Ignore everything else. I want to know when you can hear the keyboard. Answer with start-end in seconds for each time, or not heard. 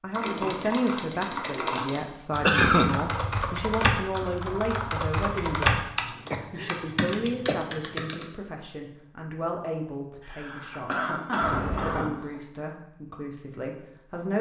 0.1-8.2.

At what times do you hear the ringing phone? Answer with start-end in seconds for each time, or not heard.
11.4-12.1.